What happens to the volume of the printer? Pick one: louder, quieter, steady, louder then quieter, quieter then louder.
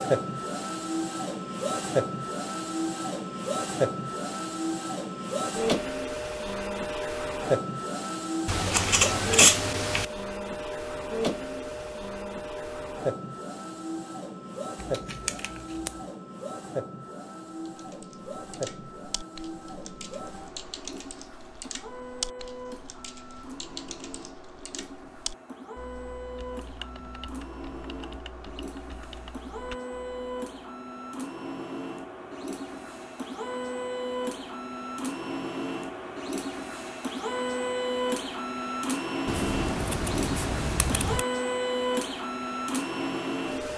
quieter then louder.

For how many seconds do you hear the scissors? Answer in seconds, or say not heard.
5 s.